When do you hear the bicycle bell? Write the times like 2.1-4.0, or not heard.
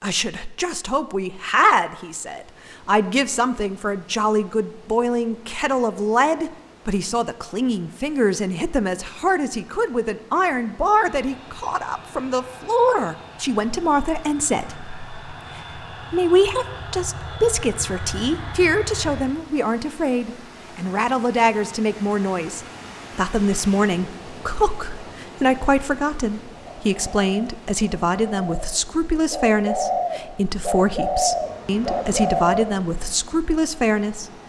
not heard.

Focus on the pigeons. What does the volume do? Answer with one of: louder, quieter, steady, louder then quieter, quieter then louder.
louder then quieter.